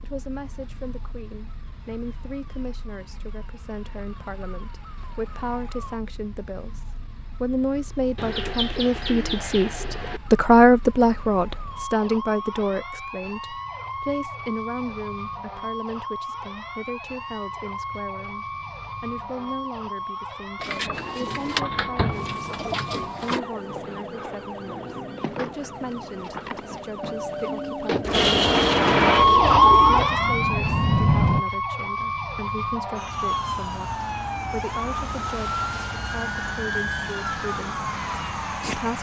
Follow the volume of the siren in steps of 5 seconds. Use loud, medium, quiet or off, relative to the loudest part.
quiet, quiet, quiet, quiet, quiet, loud, medium, medium.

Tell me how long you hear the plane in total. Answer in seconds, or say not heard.
3 s.